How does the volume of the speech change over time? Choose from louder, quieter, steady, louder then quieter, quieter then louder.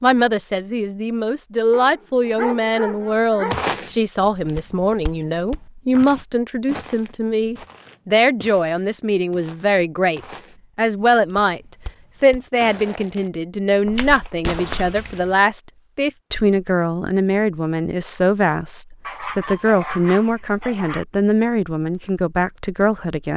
steady.